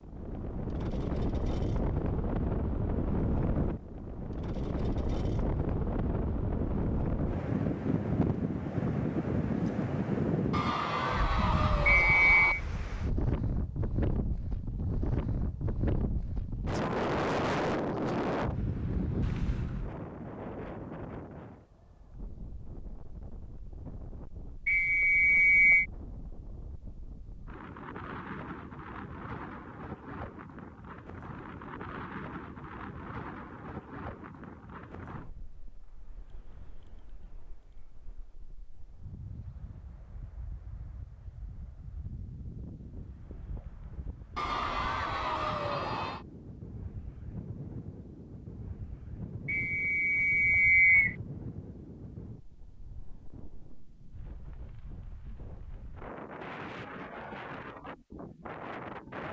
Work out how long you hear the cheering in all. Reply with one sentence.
You can hear the cheering for 4 seconds altogether.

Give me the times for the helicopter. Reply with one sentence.
You can't hear the helicopter here.